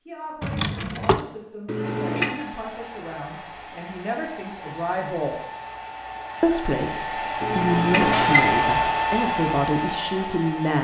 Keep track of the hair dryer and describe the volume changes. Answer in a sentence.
The loudness of the hair dryer goes up.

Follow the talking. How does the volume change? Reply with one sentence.
The volume of the talking goes up.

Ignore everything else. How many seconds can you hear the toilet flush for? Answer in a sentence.
The toilet flush can be heard for 2 seconds in total.